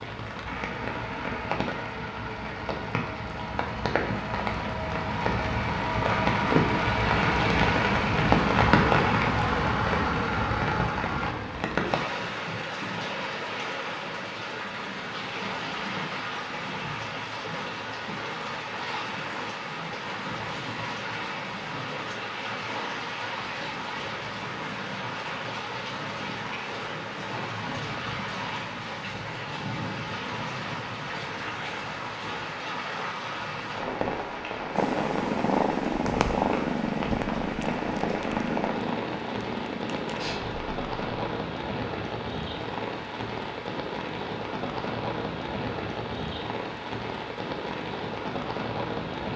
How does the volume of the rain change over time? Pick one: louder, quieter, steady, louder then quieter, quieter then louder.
quieter.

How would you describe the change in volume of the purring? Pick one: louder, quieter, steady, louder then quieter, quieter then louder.
quieter.